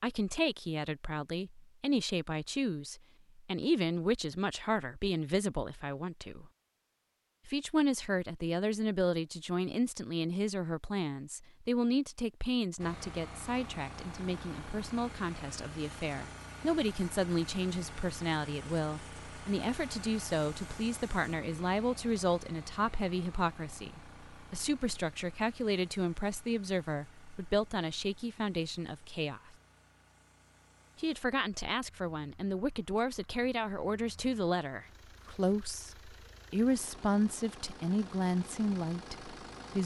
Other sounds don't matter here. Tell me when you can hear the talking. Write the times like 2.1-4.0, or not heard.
0.0-6.5, 7.5-29.5, 30.9-39.8.